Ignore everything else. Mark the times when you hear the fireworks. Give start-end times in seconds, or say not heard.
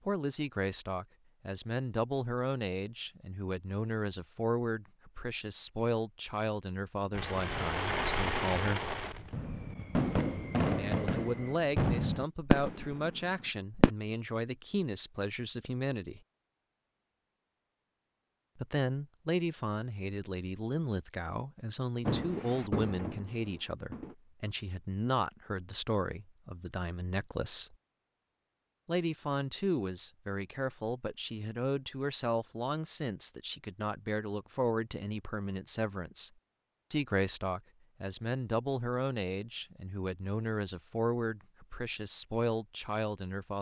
7.1-13.9, 22.1-24.1.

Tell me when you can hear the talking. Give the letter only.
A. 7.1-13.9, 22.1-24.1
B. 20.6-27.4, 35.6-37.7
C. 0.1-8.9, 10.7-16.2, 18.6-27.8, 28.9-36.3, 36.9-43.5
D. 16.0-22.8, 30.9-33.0
C.